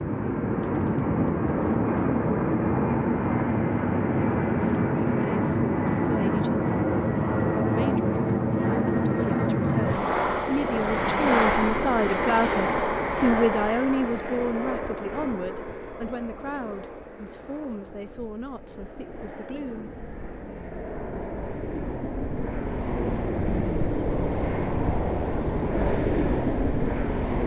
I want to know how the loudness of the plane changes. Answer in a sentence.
The volume of the plane goes down, then up.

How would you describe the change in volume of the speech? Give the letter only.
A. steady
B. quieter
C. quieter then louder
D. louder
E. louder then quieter
E.